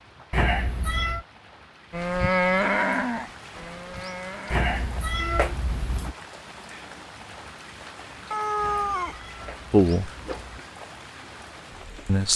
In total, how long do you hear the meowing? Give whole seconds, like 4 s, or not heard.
5 s.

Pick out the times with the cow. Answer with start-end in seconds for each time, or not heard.
1.9-5.5.